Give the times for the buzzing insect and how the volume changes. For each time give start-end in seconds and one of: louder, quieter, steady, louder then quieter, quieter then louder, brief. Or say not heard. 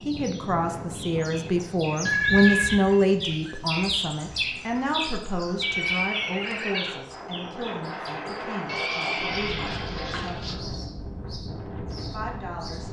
not heard.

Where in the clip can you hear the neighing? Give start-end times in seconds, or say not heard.
2.0-2.8, 5.6-7.0, 8.7-10.6.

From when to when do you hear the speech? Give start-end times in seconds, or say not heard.
0.0-10.8, 12.1-12.8.